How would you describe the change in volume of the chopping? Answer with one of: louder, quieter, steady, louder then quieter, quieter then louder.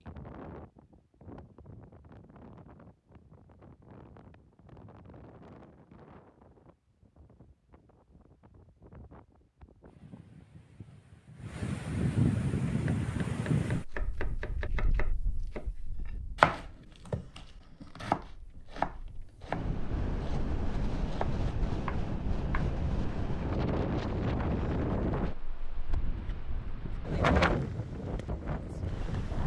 louder then quieter.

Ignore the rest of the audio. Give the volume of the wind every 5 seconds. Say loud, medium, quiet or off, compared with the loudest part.
quiet, quiet, loud, quiet, loud, loud.